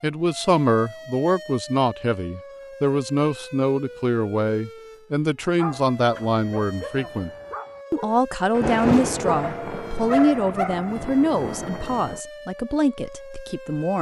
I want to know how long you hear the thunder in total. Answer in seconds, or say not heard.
4 s.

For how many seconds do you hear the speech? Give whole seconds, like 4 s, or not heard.
13 s.